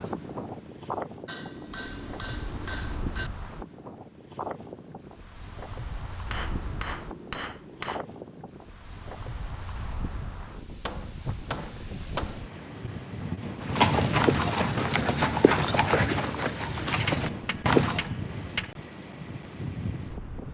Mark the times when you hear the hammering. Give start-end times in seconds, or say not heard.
1.2-3.3, 6.2-8.1, 10.6-12.4, 16.9-18.8.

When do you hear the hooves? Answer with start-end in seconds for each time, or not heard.
13.6-18.1.